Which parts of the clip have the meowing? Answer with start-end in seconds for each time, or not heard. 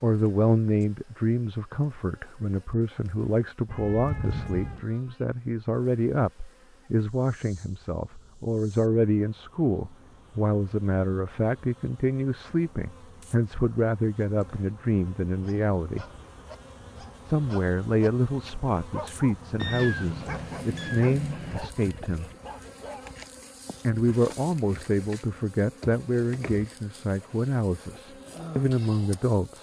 3.6-4.8, 19.6-21.6.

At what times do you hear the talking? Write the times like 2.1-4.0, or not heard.
0.0-16.1, 17.2-22.3, 23.8-29.5.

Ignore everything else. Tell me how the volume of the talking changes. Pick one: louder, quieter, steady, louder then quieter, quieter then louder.
steady.